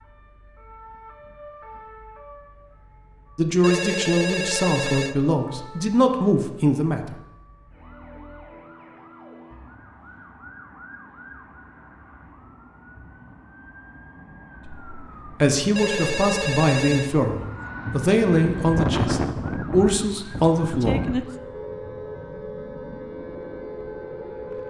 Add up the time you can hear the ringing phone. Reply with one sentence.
The ringing phone can be heard for 3 seconds in total.